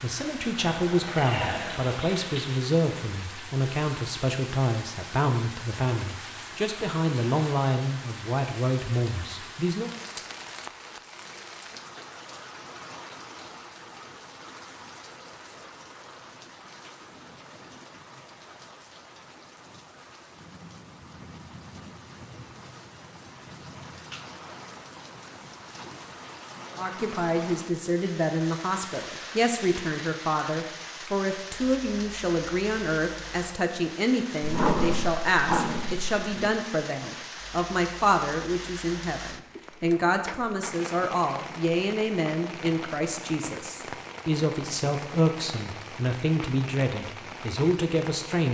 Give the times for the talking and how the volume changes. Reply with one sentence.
The talking can be heard from 0.0 to 9.9 s, at a steady volume; and from 26.8 to 48.5 s, at a steady volume.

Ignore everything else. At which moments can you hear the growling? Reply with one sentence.
You can hear the growling from 0.6 to 2.5 s and from 34.4 to 36.5 s.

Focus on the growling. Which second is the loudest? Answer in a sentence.
The loudest moment of the growling is at 35 seconds.